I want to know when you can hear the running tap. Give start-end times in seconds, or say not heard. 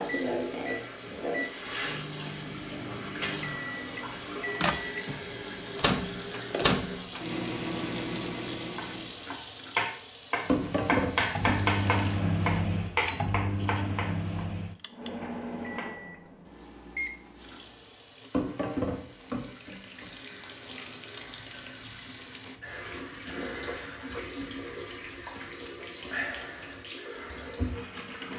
0.0-12.2, 17.4-28.3.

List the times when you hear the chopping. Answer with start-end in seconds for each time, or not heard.
8.8-14.4, 15.2-15.9.